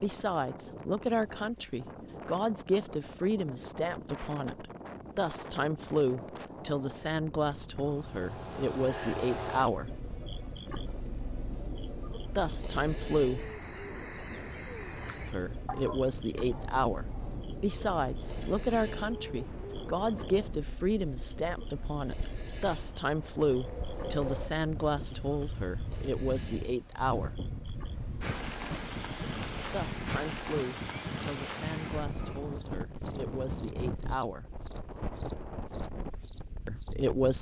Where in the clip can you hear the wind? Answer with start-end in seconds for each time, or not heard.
0.0-37.3.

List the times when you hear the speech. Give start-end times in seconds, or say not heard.
0.0-9.9, 12.3-13.4, 15.3-27.4, 29.7-34.5, 36.6-37.3.